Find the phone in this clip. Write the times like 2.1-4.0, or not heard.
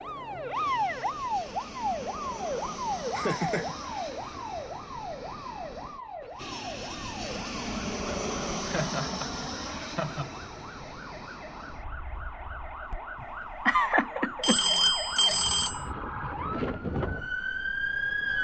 14.4-15.8.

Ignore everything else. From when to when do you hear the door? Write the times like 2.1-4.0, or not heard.
not heard.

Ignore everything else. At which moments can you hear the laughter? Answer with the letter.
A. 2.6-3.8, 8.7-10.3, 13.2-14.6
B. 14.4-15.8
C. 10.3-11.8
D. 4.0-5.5
A.